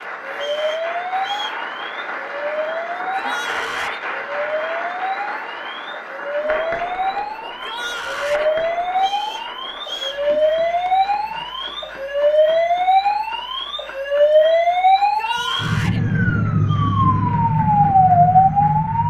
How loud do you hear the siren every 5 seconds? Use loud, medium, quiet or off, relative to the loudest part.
medium, medium, loud, loud.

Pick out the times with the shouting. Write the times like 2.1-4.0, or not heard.
3.0-4.0, 7.5-8.5, 14.9-16.0.